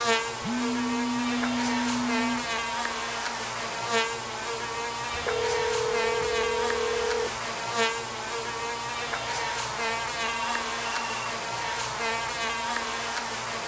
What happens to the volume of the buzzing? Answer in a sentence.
The volume of the buzzing stays about the same.